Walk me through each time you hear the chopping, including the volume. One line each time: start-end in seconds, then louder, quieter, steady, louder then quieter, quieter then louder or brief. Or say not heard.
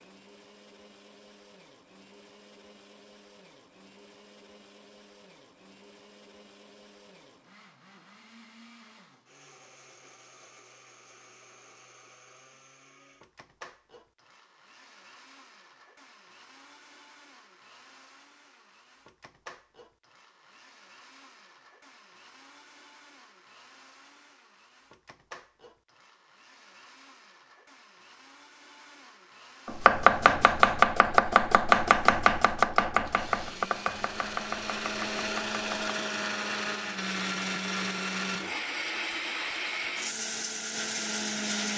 29.6-36.0 quieter.